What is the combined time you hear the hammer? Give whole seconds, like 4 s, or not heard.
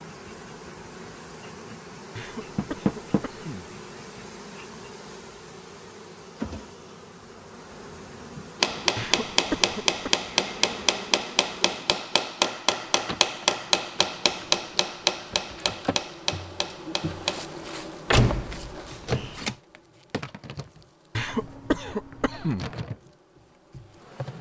9 s.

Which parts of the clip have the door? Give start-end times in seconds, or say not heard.
2.5-3.2, 18.1-19.6.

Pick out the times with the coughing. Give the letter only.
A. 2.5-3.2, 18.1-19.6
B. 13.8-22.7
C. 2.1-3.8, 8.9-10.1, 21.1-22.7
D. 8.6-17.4
C.